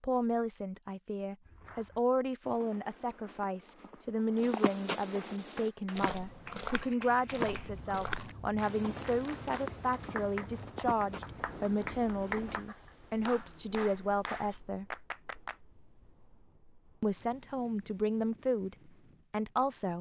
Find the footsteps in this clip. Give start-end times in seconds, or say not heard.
1.4-12.6.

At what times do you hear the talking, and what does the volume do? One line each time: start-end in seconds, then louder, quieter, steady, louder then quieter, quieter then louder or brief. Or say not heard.
0.0-14.8 steady
17.0-19.9 brief.